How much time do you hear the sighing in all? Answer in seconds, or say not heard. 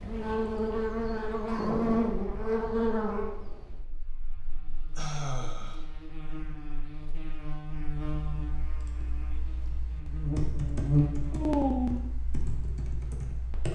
2 s.